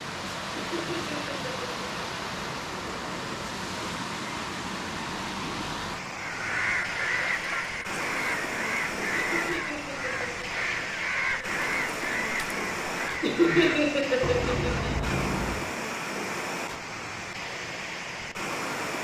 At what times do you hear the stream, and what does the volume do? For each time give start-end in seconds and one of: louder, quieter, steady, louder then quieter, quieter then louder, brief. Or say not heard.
0.0-19.0 steady.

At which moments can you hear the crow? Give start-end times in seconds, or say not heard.
6.2-15.8.